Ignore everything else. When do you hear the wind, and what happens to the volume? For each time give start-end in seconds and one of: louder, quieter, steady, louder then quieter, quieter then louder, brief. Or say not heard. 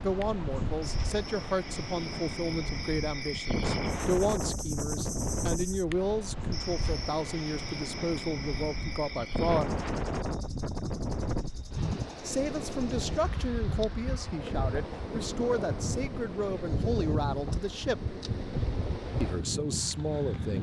0.0-20.5 steady.